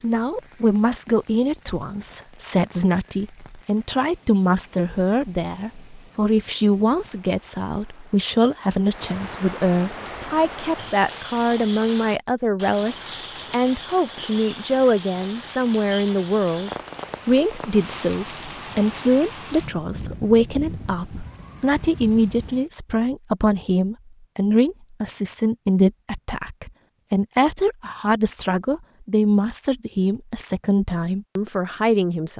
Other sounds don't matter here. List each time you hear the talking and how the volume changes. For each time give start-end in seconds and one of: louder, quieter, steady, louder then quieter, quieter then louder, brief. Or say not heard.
0.0-32.3 steady.